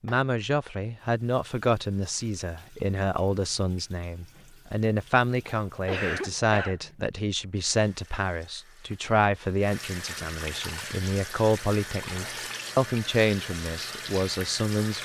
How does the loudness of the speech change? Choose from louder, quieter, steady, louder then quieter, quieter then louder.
steady.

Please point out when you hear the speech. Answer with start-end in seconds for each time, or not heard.
0.0-15.0.